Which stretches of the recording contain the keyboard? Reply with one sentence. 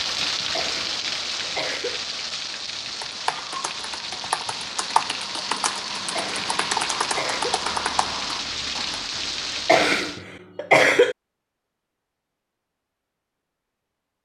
The keyboard can be heard from 3.0 to 9.0 s.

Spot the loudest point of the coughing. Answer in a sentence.
The loudest moment of the coughing is at 11 seconds.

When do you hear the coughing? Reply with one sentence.
You can hear the coughing from 0.5 to 2.0 s, from 6.2 to 7.6 s and from 9.7 to 11.2 s.